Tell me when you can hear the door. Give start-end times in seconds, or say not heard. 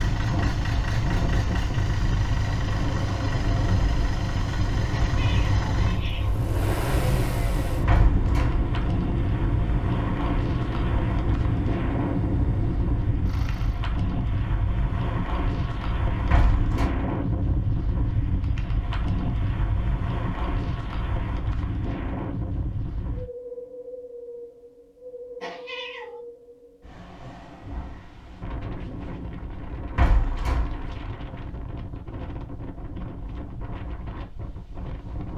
7.8-8.7, 16.3-16.9, 29.9-31.0.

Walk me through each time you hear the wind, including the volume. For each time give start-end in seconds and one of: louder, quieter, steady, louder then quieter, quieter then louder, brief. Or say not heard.
0.0-35.3 quieter.